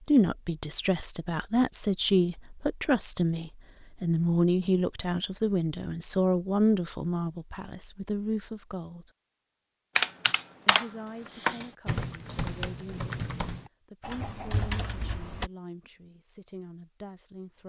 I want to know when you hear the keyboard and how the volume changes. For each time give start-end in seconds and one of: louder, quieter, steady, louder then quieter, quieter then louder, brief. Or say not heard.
9.9-15.5 quieter.